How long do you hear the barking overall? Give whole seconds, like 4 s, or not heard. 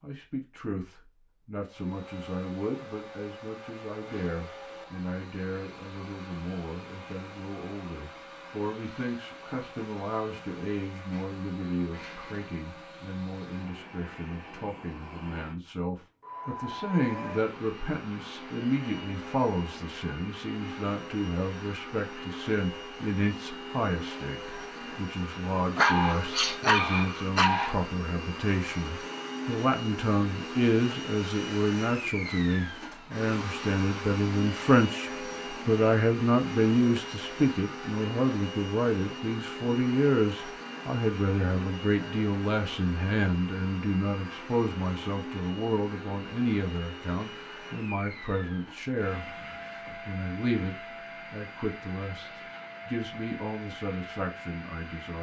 2 s.